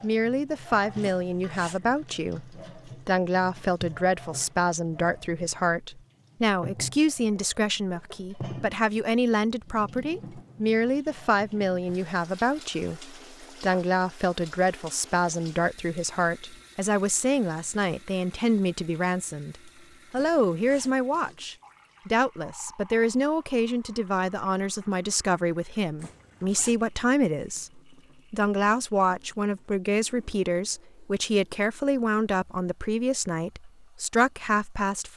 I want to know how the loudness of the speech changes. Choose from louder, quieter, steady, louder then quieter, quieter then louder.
steady.